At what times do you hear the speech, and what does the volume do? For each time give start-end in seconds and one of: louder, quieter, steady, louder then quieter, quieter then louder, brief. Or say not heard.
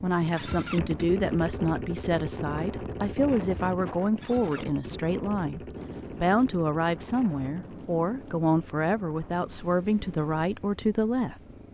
0.0-11.3 steady.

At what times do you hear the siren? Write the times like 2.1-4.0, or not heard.
not heard.